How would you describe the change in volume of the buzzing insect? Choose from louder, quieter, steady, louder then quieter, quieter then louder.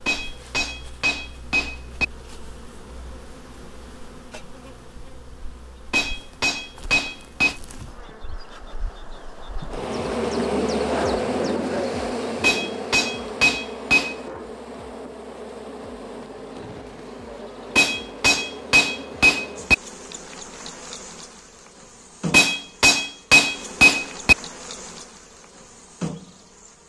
louder then quieter.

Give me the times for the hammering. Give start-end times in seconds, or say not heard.
0.1-2.0, 5.9-7.6, 12.4-14.2, 17.8-19.8, 22.3-24.4.